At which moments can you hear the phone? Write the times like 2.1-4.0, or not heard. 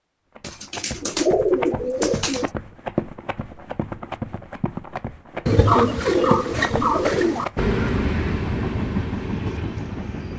not heard.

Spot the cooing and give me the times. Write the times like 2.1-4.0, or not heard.
0.4-2.5, 5.5-7.5.